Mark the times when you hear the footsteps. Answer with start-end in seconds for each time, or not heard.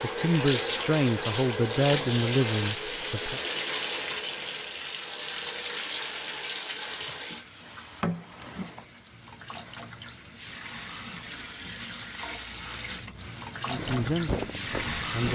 13.7-15.2.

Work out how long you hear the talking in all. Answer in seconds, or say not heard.
5 s.